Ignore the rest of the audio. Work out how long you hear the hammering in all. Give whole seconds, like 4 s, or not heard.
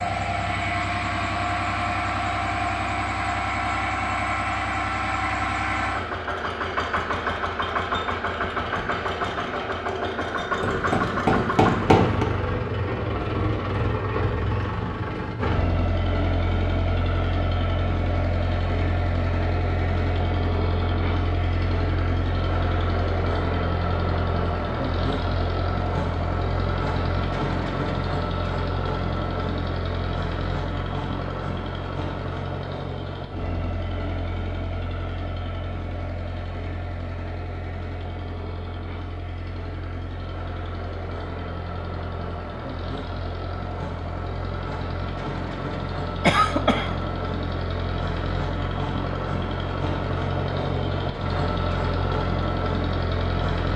2 s.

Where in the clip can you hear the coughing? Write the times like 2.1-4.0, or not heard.
46.2-47.0.